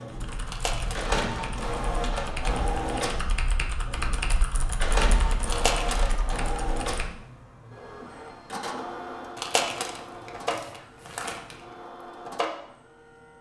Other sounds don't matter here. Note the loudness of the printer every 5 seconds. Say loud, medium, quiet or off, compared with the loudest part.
loud, loud, medium.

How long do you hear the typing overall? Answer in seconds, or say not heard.
7 s.